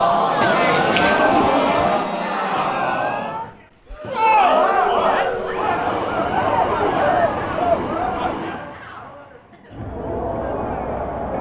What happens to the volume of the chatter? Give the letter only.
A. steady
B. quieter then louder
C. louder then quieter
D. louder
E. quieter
E.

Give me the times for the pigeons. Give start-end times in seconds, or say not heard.
0.4-2.1, 6.2-8.3.